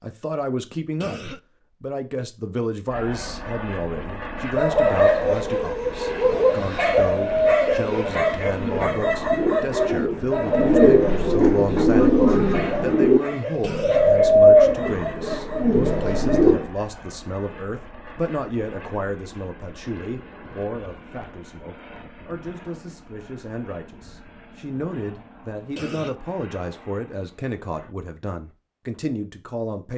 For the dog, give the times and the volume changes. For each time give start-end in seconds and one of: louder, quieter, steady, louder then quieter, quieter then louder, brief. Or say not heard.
4.5-16.4 quieter.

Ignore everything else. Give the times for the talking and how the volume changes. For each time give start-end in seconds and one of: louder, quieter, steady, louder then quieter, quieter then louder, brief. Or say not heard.
0.0-29.9 steady.